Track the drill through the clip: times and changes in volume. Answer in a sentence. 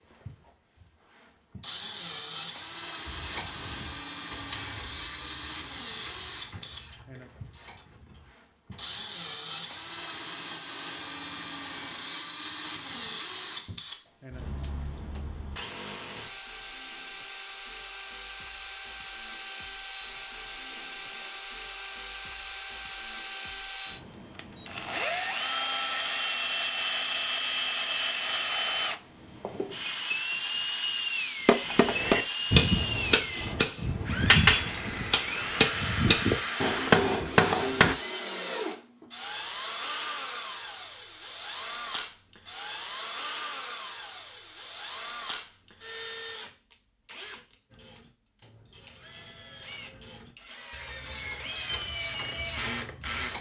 You can hear the drill from 0.0 to 53.3 s, getting louder then quieter.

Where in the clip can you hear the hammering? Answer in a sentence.
The hammering can be heard from 31.4 to 38.0 s.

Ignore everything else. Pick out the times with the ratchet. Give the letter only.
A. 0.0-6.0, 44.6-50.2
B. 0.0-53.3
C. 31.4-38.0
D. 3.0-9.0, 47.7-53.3
D.